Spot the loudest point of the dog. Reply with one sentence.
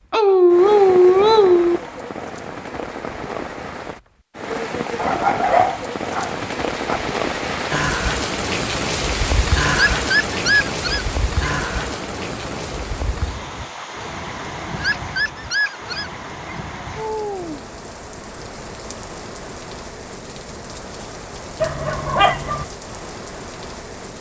The volume of the dog peaks at 1 second.